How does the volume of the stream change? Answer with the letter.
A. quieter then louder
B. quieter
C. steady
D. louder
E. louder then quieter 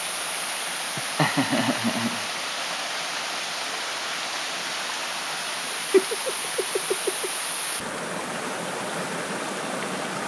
C.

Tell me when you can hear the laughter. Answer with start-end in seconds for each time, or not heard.
0.9-2.2, 5.9-7.3.